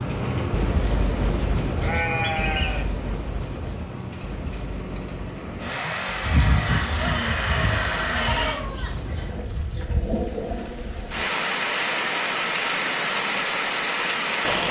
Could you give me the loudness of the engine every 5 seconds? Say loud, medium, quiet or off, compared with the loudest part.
medium, loud, off.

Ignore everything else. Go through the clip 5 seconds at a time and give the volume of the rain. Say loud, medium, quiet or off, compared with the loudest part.
medium, quiet, loud.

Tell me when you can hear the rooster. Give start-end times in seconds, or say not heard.
6.2-9.8.